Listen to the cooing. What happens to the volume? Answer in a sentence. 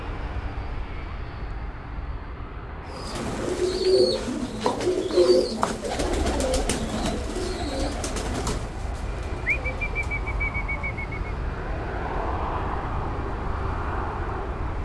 The loudness of the cooing goes down.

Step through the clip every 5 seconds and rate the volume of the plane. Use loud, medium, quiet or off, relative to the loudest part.
medium, medium, loud.